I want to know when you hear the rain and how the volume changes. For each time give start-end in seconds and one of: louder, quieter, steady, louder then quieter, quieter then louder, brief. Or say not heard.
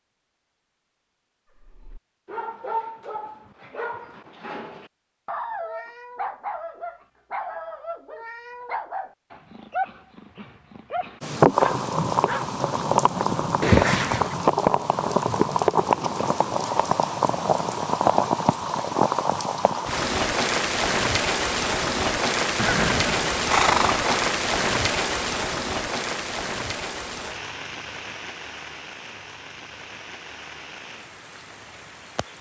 11.2-32.3 quieter.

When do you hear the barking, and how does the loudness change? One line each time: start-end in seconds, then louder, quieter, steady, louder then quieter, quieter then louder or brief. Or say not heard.
1.6-12.5 steady.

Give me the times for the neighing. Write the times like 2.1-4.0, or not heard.
13.6-14.3, 22.6-24.3.